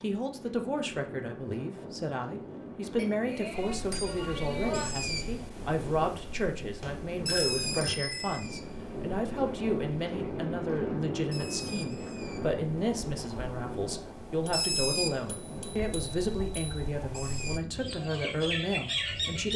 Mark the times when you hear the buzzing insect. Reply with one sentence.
You can't hear the buzzing insect here.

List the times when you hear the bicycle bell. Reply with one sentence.
The bicycle bell can be heard from 3.0 to 4.9 s, from 6.8 to 8.4 s and from 14.4 to 16.8 s.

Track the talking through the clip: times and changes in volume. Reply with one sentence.
The talking can be heard from 0.0 to 19.5 s, at a steady volume.